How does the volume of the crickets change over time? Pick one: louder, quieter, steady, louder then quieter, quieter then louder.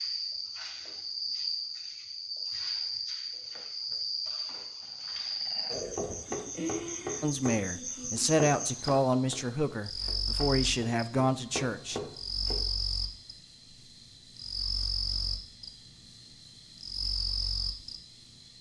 steady.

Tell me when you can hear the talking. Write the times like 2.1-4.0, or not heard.
7.2-12.0.